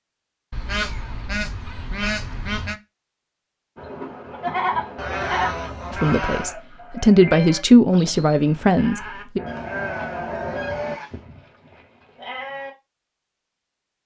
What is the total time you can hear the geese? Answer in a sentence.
You can hear the geese for 6 seconds altogether.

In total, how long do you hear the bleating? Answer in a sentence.
The bleating can be heard for 9 seconds in total.